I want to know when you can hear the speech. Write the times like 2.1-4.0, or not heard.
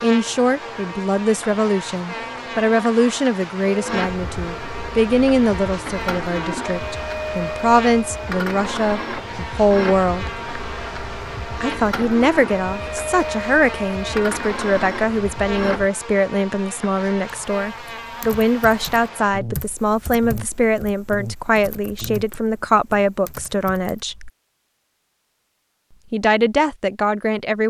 0.0-10.3, 11.6-24.3, 26.1-27.6.